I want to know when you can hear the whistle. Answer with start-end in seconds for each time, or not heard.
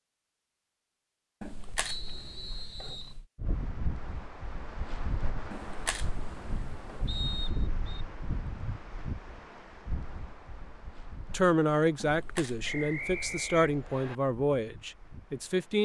1.9-3.1, 7.0-8.1, 12.6-14.2.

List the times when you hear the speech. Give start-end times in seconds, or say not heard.
11.3-15.8.